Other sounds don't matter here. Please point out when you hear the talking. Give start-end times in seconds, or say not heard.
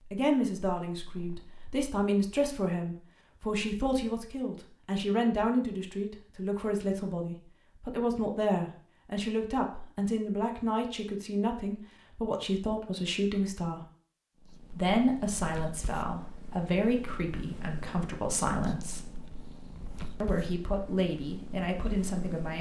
0.1-13.8, 14.7-19.1, 20.2-22.5.